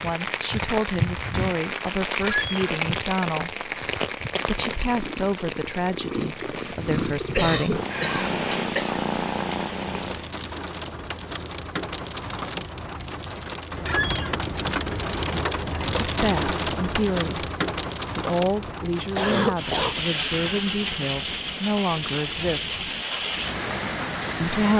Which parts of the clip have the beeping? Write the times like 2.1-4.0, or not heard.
not heard.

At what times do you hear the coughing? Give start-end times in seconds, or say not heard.
7.3-9.0, 19.1-19.9.